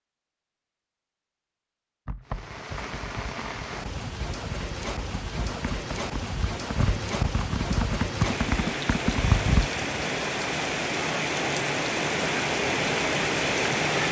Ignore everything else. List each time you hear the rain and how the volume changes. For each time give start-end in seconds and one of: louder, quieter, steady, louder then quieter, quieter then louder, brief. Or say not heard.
2.2-14.0 louder.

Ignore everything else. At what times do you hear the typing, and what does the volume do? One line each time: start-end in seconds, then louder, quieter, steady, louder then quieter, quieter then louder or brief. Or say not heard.
2.0-9.7 louder.